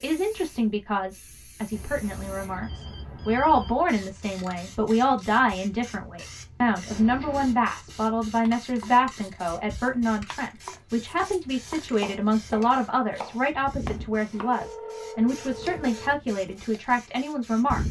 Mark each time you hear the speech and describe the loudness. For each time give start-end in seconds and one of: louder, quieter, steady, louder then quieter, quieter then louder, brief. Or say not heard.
0.0-17.8 steady.